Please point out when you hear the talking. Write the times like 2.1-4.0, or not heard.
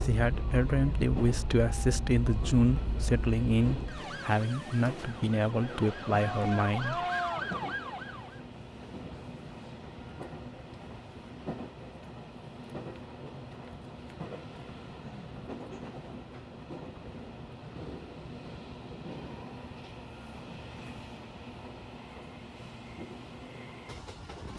0.0-7.0.